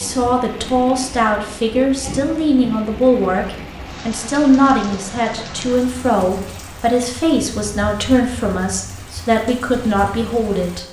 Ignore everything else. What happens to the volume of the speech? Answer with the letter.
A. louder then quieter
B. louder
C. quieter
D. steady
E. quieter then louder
D.